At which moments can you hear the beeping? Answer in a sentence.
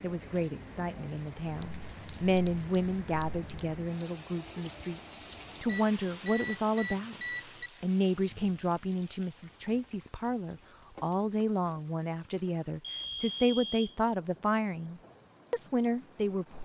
The beeping can be heard from 1.4 to 3.8 s, from 5.7 to 7.7 s and from 12.3 to 13.9 s.